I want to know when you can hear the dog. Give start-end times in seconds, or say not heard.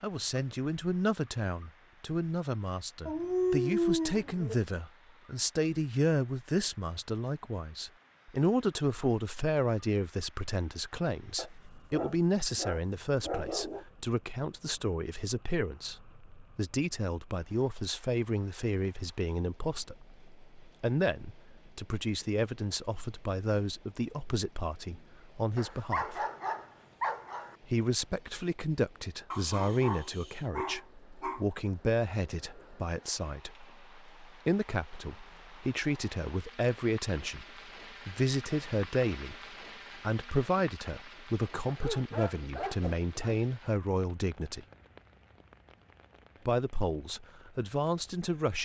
3.0-4.5, 11.3-13.8, 25.6-27.6, 29.3-31.4, 41.6-43.4.